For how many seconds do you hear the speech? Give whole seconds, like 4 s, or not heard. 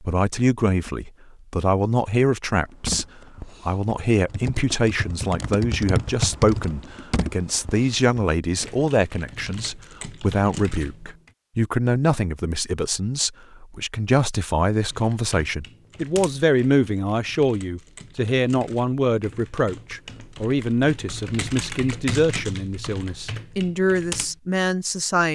25 s.